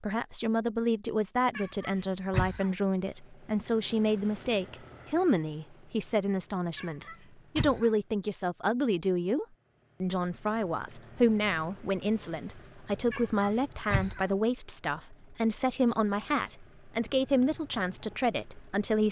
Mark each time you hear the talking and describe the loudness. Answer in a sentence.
The talking can be heard from 0.0 to 19.0 s, at a steady volume.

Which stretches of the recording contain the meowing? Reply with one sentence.
You can hear the meowing from 1.6 to 2.7 s, from 6.8 to 7.9 s and from 13.1 to 14.2 s.